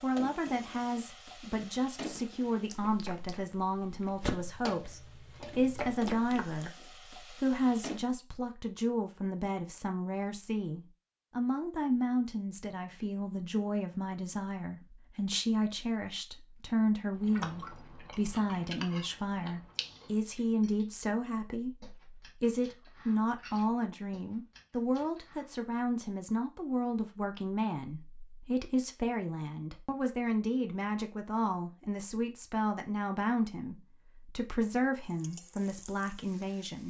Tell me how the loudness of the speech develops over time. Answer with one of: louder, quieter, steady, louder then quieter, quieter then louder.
steady.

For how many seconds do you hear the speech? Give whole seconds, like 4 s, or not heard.
36 s.